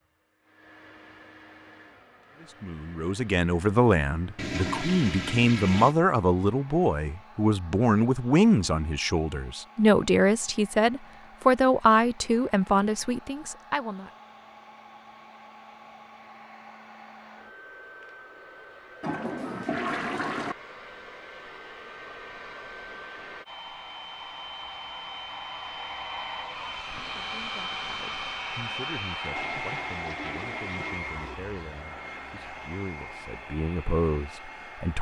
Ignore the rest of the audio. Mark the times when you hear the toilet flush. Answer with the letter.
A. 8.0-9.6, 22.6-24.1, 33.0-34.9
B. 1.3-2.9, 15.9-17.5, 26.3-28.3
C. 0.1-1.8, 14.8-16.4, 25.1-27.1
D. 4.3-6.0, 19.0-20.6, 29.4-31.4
D.